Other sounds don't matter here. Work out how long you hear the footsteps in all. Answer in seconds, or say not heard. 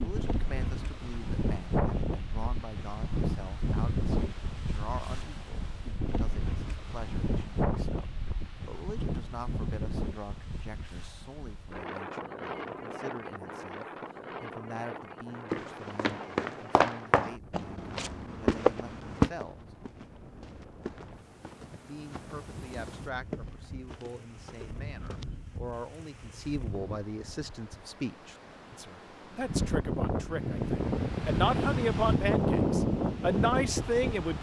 10 s.